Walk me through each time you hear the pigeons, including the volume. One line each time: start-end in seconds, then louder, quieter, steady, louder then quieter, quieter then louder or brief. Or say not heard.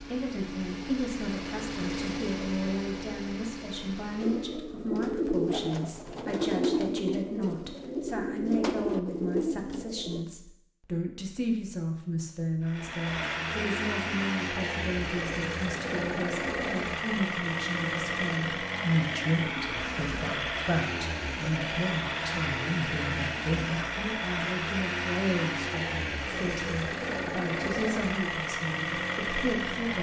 4.2-10.2 steady.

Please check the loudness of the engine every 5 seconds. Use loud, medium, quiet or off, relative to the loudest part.
medium, off, loud, loud, loud, loud.